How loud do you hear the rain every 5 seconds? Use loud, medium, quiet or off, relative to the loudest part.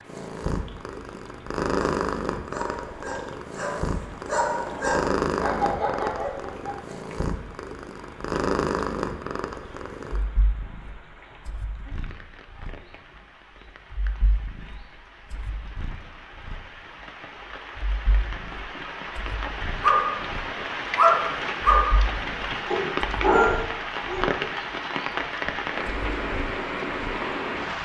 quiet, quiet, quiet, medium, loud, loud.